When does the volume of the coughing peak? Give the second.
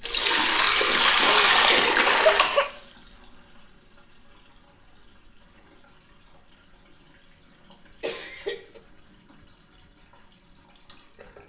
2 s.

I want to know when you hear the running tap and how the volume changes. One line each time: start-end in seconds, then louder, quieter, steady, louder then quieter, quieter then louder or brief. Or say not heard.
0.0-11.4 quieter.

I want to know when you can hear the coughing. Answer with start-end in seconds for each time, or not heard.
1.2-2.7, 8.0-8.8.